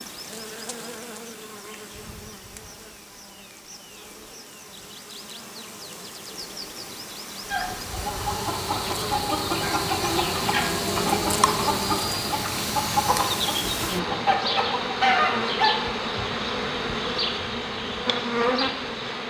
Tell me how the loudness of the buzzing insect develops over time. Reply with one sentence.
The loudness of the buzzing insect goes up.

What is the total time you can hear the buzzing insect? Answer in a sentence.
The buzzing insect can be heard for 19 seconds in total.